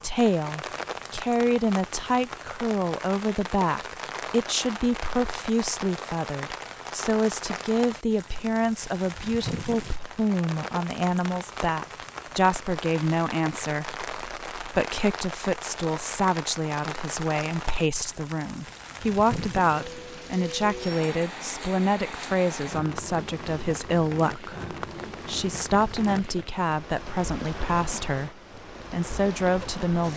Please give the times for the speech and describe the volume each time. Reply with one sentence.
The speech can be heard from 0.0 to 30.1 s, at a steady volume.